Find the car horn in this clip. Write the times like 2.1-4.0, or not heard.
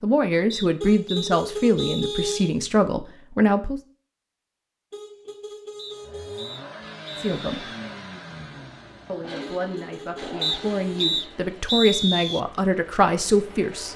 0.8-2.6, 4.9-6.5, 9.4-11.2.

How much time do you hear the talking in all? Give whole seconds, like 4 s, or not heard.
9 s.